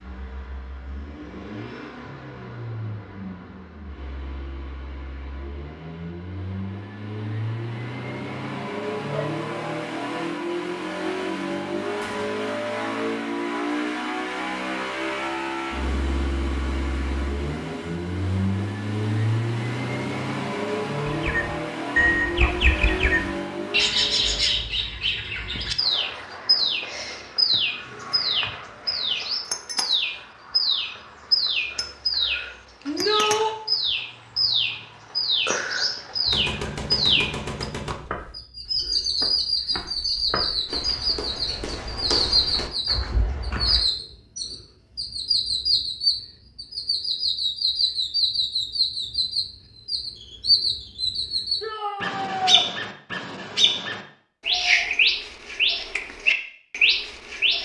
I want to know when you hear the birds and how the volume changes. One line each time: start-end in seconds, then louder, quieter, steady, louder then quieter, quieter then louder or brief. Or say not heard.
21.1-57.6 steady.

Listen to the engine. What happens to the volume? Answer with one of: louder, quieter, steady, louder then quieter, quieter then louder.
louder.